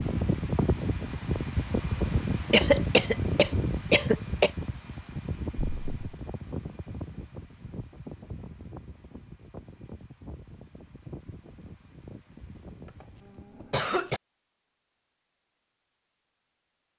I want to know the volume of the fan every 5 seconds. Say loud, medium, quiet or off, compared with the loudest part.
loud, medium, quiet, off.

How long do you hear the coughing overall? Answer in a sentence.
You can hear the coughing for 3 seconds altogether.